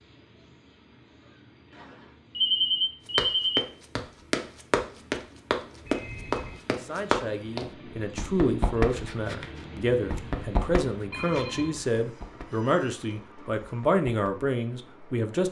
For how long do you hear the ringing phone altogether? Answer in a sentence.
The ringing phone can be heard for 3 seconds in total.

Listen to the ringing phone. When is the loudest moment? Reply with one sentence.
The volume of the ringing phone peaks at 3 seconds.